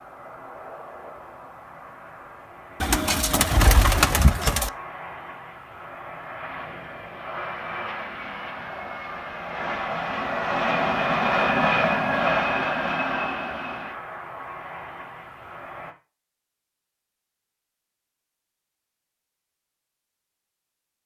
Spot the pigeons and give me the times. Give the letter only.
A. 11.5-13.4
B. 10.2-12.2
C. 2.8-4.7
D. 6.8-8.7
C.